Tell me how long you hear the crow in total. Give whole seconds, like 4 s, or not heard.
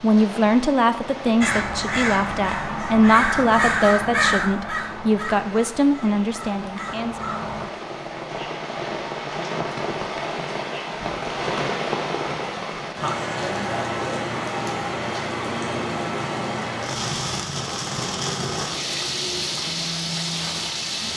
6 s.